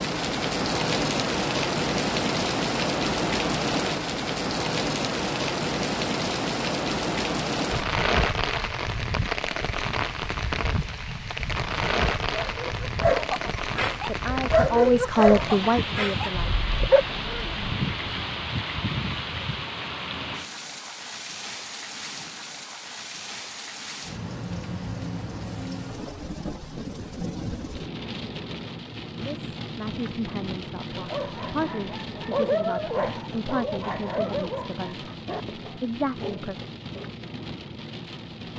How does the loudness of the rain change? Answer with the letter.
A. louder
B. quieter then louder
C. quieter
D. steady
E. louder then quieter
C.